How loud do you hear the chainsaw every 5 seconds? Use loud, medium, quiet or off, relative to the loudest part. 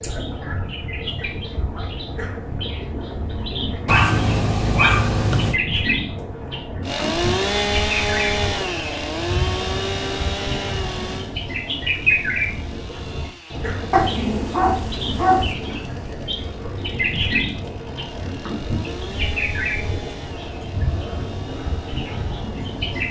off, loud, medium, quiet, quiet.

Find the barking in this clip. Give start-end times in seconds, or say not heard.
3.9-5.6, 13.9-15.6.